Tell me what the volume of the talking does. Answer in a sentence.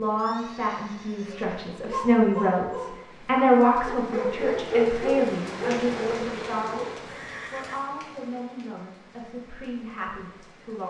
The loudness of the talking goes up, then down.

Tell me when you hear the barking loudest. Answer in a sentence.
The volume of the barking peaks at 5 seconds.